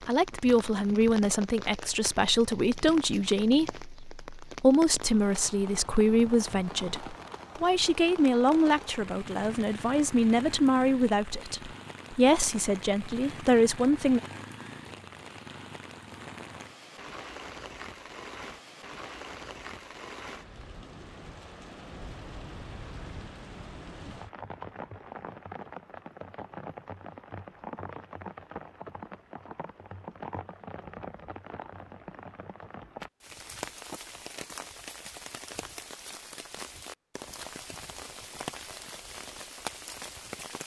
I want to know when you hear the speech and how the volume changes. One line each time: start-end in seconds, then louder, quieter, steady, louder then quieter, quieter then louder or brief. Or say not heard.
0.1-14.2 steady.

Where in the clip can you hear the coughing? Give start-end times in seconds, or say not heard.
not heard.